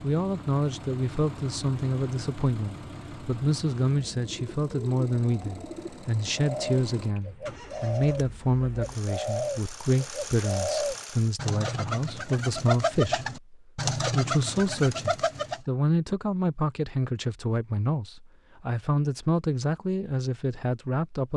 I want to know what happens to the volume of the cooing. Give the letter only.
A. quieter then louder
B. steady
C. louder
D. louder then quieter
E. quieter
C.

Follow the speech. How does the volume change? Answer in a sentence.
The loudness of the speech stays about the same.